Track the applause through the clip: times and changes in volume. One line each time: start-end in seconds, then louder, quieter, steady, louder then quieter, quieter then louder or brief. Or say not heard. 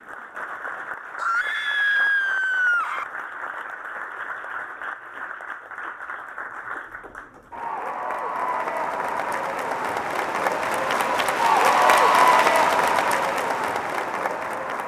0.0-14.8 louder.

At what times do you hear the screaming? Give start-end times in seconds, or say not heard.
1.1-3.0.